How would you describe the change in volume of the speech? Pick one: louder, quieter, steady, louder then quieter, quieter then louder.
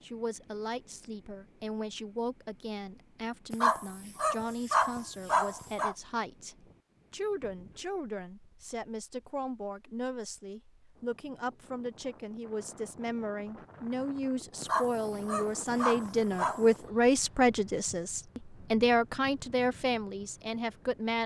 louder.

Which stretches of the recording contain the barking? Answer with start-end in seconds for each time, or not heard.
3.5-6.0, 14.6-16.8.